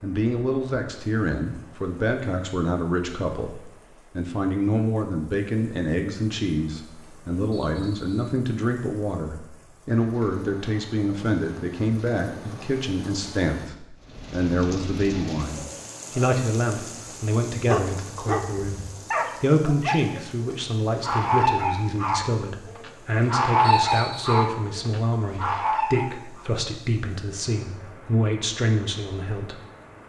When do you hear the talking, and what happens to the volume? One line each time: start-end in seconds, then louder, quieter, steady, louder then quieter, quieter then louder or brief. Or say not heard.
0.0-29.6 steady.